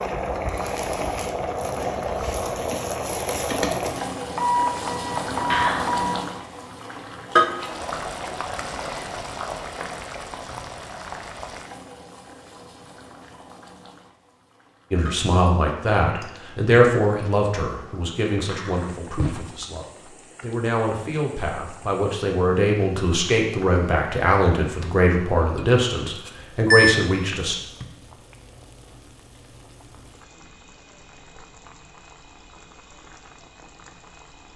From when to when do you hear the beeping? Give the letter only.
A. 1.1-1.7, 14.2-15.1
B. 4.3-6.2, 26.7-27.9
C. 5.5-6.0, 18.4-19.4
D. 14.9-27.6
B.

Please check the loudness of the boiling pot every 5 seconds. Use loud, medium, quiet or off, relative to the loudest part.
loud, loud, quiet, quiet, quiet, quiet, quiet.